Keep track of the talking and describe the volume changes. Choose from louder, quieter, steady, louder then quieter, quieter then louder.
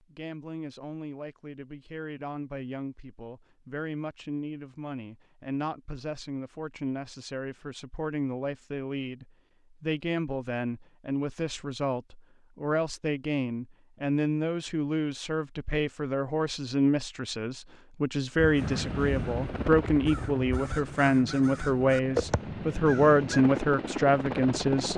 louder.